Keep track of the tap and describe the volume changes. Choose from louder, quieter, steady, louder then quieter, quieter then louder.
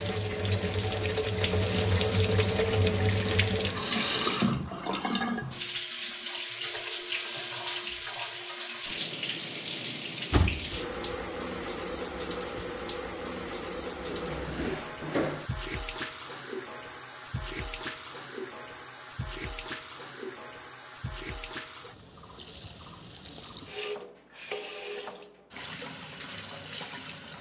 quieter.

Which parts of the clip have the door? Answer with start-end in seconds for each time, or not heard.
10.3-11.2, 14.1-15.5.